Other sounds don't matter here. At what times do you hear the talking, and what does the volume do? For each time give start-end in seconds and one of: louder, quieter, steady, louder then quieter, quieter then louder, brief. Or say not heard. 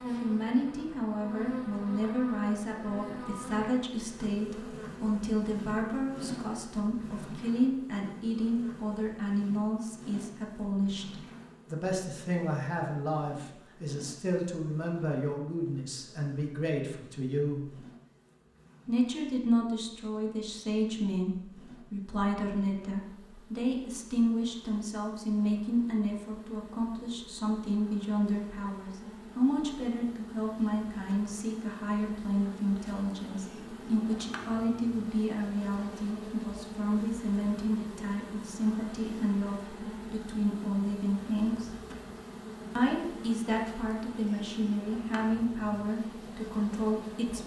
0.2-17.8 steady
18.9-41.7 steady
42.8-47.4 steady.